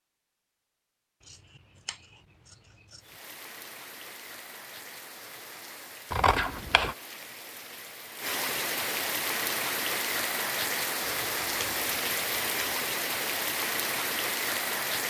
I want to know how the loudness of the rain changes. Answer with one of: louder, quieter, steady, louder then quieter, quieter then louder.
louder.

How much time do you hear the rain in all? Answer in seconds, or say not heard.
12 s.